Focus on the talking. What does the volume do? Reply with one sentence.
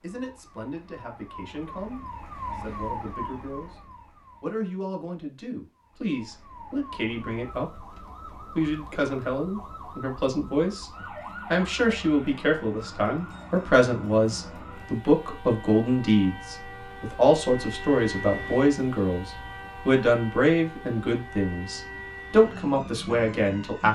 The volume of the talking goes up.